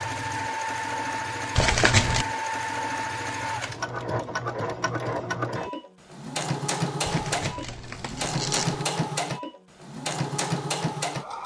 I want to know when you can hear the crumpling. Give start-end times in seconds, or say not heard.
1.6-2.2, 7.0-8.8.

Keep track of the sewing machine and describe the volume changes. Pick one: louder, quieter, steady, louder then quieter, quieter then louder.
steady.